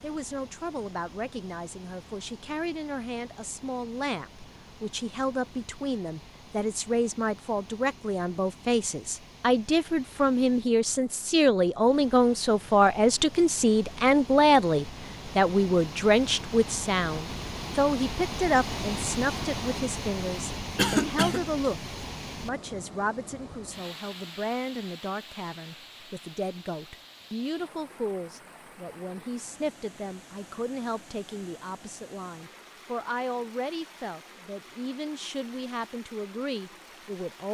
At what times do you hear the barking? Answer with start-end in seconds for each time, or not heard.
not heard.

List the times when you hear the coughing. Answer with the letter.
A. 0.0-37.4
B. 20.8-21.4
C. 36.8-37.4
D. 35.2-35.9
B.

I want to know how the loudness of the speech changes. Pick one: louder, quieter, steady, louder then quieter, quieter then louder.
louder then quieter.